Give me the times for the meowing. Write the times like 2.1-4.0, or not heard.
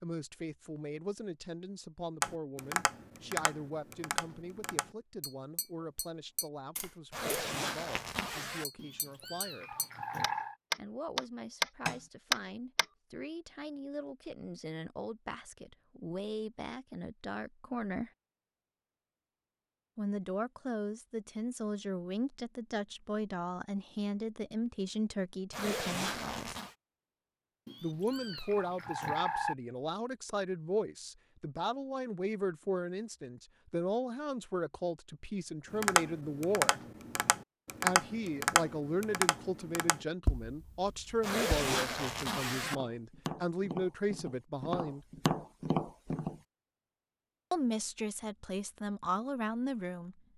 8.8-10.6, 27.6-29.6.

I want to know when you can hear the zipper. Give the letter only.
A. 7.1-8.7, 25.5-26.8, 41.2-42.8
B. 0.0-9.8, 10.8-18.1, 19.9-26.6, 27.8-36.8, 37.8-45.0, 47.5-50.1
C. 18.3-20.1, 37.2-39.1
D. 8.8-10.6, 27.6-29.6
A.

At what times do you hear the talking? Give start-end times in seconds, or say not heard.
0.0-9.8, 10.8-18.1, 19.9-26.6, 27.8-36.8, 37.8-45.0, 47.5-50.1.